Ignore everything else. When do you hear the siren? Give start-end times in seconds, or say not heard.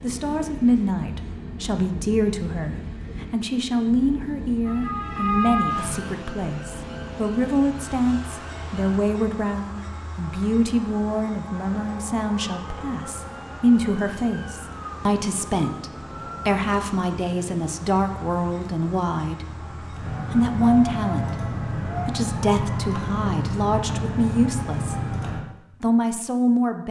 4.7-9.0, 11.7-25.4.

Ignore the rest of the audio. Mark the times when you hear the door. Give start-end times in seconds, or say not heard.
not heard.